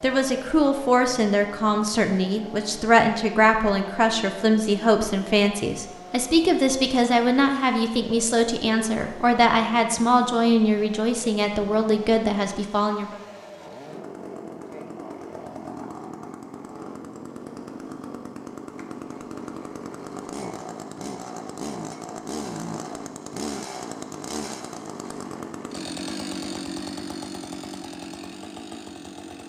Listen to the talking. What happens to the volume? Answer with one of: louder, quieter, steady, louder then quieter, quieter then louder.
steady.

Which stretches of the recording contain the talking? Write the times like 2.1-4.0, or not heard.
0.0-13.2.